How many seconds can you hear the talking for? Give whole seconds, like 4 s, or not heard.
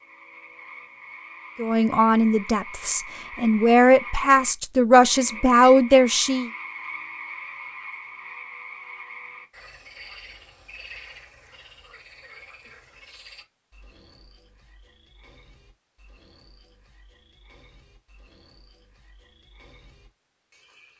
5 s.